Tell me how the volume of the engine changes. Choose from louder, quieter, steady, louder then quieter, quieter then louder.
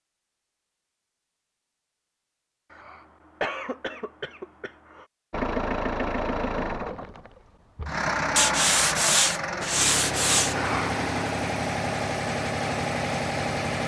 steady.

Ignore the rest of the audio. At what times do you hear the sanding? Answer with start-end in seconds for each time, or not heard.
8.3-10.6.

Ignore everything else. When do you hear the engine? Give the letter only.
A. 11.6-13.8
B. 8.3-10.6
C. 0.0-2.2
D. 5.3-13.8
D.